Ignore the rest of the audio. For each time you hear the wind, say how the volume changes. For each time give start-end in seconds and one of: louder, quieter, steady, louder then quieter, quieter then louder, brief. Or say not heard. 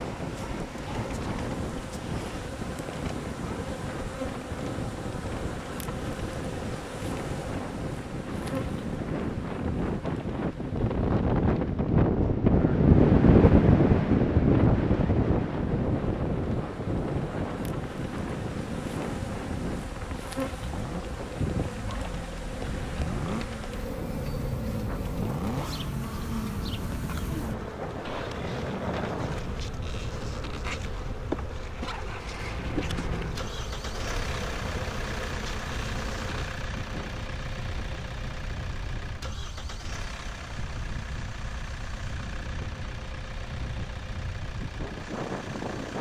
0.0-45.9 louder then quieter.